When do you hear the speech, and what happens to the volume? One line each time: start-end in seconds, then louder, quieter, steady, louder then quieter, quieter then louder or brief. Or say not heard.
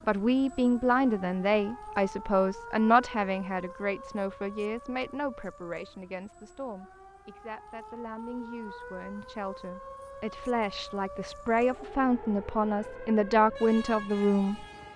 0.1-14.7 quieter then louder.